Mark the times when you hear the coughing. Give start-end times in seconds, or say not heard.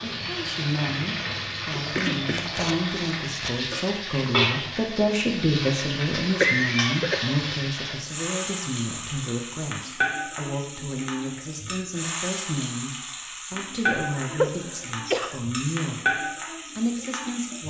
1.7-3.7, 6.4-7.5, 14.3-15.3.